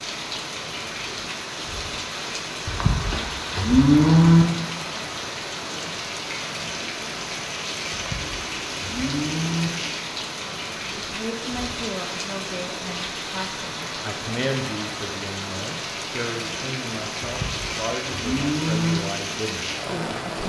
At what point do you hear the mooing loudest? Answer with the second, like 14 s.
4 s.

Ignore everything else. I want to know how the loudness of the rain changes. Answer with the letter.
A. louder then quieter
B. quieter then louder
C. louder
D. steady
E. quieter
D.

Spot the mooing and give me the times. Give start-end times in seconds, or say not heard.
2.6-4.5, 7.9-9.7, 17.2-19.0.